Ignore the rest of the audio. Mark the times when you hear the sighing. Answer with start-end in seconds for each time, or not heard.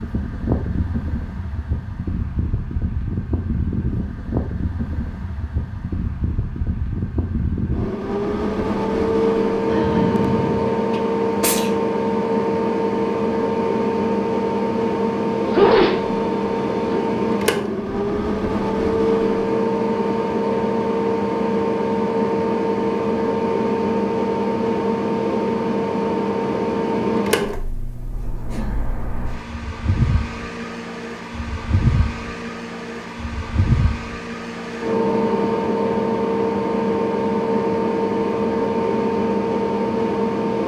9.7-10.8, 28.5-28.9.